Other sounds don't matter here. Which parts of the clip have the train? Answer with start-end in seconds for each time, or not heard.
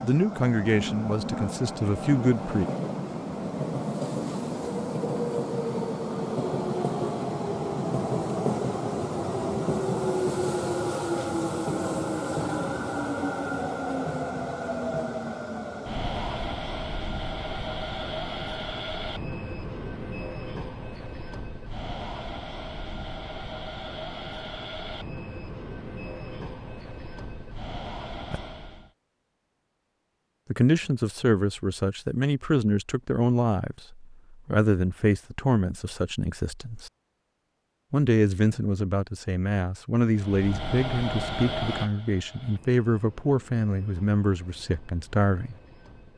0.0-28.9, 40.1-46.1.